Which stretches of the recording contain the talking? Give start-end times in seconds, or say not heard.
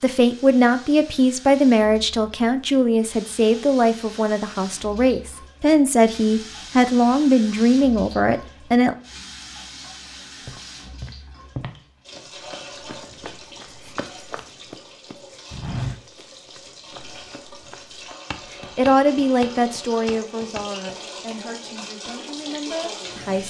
0.0-8.9, 18.8-23.4.